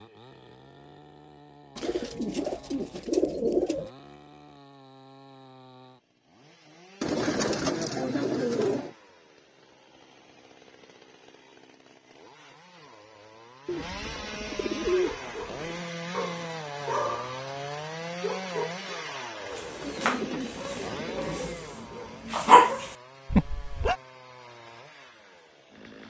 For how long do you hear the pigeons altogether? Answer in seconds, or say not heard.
8 s.